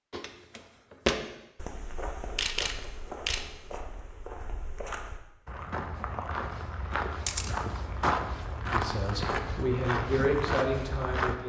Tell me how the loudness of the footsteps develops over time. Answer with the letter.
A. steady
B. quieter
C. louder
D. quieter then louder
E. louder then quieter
D.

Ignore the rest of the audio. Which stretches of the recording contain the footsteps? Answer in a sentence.
You can hear the footsteps from 0.1 to 11.3 s.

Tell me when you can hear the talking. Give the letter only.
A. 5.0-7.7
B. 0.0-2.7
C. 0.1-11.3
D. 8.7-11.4
D.